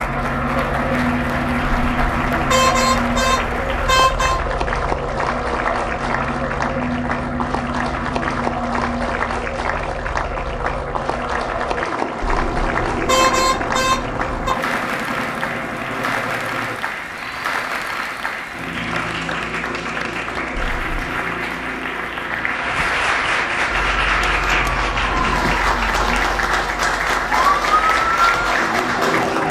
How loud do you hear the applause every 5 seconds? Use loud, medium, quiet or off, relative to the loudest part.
medium, medium, medium, medium, loud, loud.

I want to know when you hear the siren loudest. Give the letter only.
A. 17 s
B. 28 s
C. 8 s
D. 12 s
B.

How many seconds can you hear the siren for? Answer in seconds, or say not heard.
6 s.